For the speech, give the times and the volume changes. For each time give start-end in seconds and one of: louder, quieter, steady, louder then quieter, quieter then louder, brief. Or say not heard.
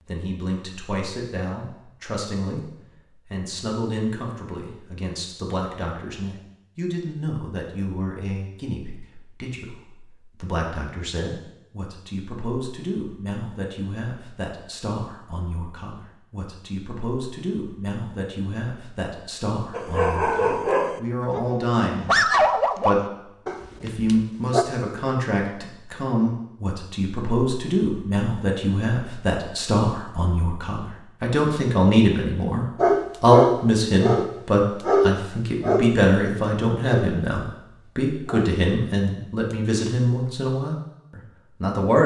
0.1-42.0 louder.